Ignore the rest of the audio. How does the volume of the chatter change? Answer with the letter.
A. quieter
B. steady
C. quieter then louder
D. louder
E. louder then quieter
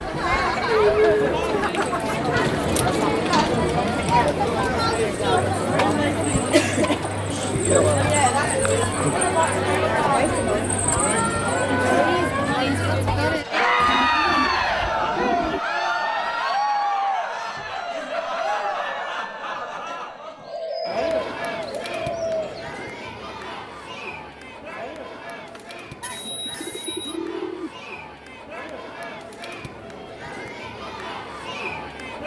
A.